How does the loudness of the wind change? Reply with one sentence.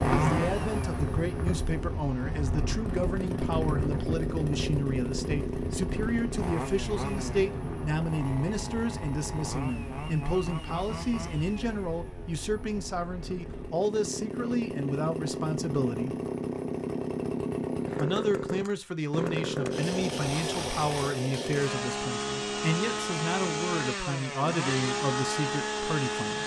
The volume of the wind goes down.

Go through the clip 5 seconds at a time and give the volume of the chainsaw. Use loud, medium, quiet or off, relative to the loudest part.
loud, medium, medium, loud, loud, loud.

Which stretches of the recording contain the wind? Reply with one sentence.
You can hear the wind from 0.0 to 13.8 s.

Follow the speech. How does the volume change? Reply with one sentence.
The loudness of the speech stays about the same.